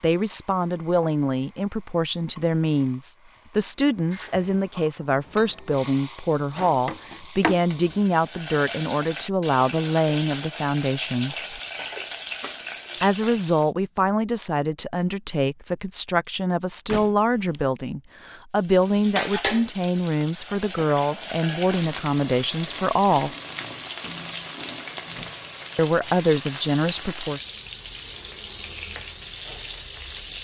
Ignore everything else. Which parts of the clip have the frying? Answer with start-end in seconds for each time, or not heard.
0.0-13.7, 18.6-30.3.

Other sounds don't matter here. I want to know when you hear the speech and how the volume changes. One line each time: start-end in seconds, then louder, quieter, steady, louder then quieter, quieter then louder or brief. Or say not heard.
0.0-11.6 steady
13.0-23.3 steady
25.8-27.4 brief.